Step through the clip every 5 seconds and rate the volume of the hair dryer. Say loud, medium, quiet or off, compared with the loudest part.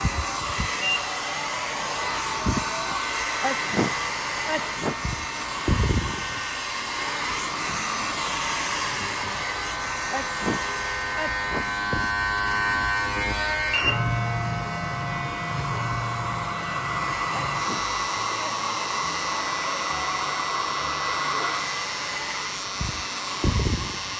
loud, loud, medium, loud, loud.